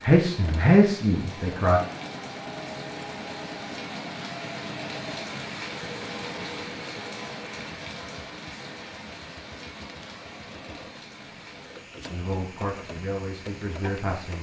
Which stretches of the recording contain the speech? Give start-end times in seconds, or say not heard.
0.0-1.8, 12.1-14.3.